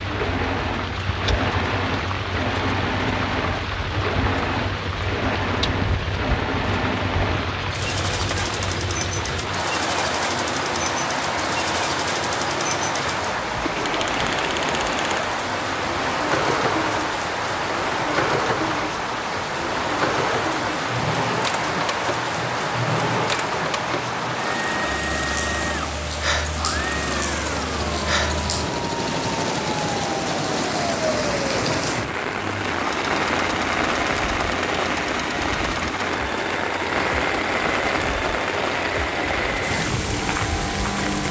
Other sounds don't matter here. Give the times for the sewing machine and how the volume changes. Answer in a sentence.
You can hear the sewing machine from 0.0 to 41.2 s, at a steady volume.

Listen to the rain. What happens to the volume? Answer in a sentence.
The volume of the rain stays about the same.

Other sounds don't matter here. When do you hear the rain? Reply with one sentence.
The rain can be heard from 0.0 to 41.2 s.